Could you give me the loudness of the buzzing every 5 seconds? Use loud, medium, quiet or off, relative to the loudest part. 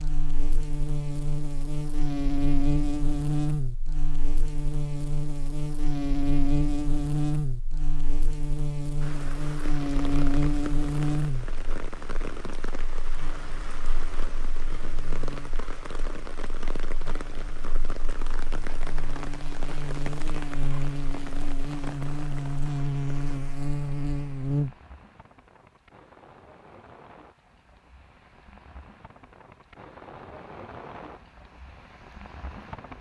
loud, loud, loud, quiet, loud, off, off.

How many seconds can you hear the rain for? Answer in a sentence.
You can hear the rain for 24 seconds altogether.